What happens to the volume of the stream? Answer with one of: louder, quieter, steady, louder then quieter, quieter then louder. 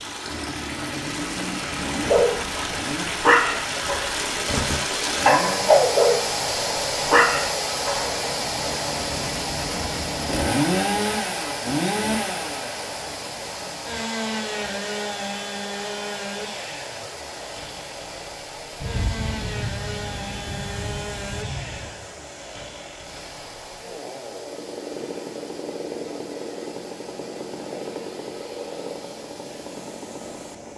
quieter.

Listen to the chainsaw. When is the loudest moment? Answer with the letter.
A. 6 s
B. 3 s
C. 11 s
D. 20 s
C.